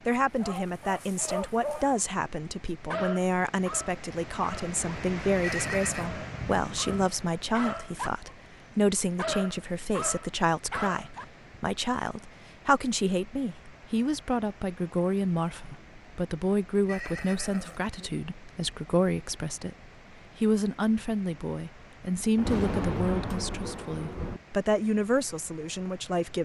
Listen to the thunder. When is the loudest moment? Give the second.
23 s.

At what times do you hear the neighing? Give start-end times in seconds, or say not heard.
5.4-6.1, 16.9-17.9.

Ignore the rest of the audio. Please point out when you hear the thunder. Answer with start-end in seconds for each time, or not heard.
5.5-7.1, 22.4-24.4.